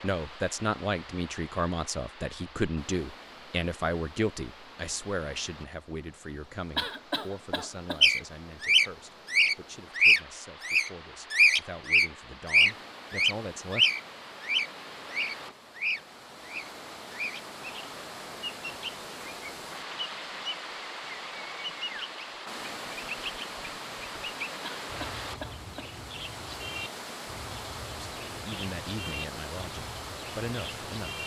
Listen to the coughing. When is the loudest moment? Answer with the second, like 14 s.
7 s.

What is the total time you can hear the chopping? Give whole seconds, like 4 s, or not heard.
not heard.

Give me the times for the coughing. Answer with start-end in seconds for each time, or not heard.
6.8-8.1, 24.6-25.9.